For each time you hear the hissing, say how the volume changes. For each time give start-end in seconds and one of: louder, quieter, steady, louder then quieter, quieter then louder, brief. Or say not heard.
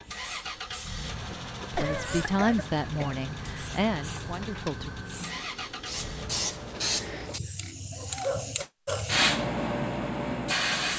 0.0-10.9 louder.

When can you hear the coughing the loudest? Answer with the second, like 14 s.
2 s.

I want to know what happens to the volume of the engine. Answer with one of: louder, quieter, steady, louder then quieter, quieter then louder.
steady.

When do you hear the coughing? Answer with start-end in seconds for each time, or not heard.
1.8-3.2.